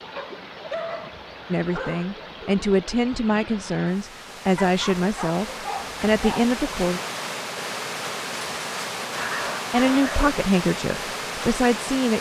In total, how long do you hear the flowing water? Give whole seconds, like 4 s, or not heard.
12 s.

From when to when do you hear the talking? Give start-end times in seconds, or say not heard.
1.5-7.0, 9.7-12.1.